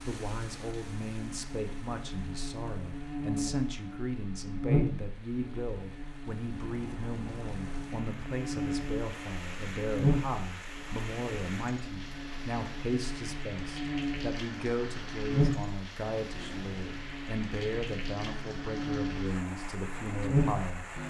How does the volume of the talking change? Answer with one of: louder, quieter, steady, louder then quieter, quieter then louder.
steady.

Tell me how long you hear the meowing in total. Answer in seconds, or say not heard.
2 s.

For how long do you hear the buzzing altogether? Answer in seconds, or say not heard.
21 s.